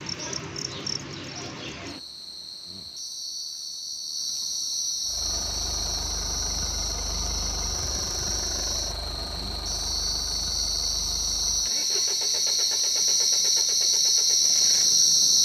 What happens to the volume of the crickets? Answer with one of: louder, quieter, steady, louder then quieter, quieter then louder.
louder.